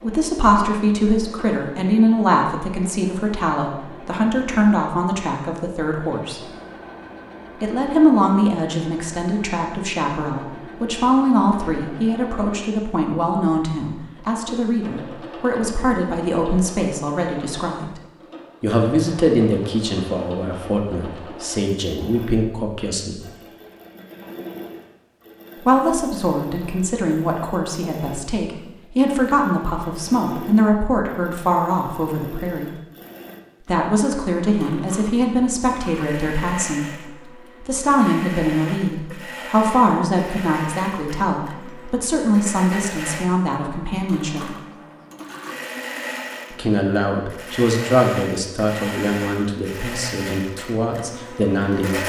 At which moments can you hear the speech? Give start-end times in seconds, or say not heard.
0.0-6.5, 7.6-18.0, 18.6-23.2, 25.6-32.7, 33.6-44.5, 46.5-52.0.